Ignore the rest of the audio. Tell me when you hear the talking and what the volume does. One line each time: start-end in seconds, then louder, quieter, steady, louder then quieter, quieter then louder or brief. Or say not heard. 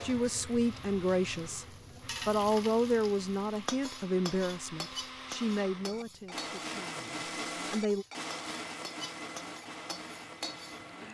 0.0-1.6 brief
2.2-8.1 quieter.